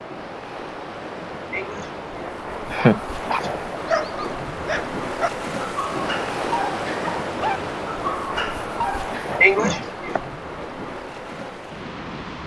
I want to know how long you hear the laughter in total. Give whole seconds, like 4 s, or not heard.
3 s.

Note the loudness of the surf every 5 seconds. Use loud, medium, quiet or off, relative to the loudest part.
loud, loud, medium.